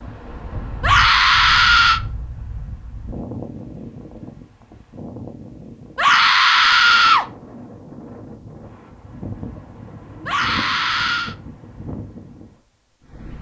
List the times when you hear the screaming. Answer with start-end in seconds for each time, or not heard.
0.8-2.0, 6.0-7.2, 10.2-11.3.